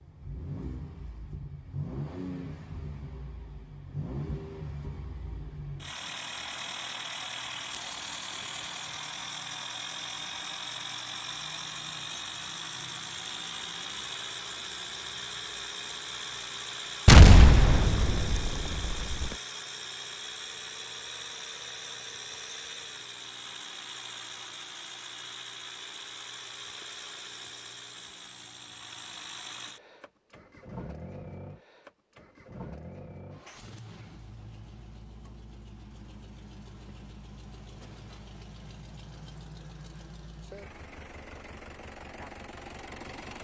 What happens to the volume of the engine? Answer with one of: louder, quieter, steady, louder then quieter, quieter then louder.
quieter.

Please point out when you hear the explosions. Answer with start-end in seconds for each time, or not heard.
17.1-19.3.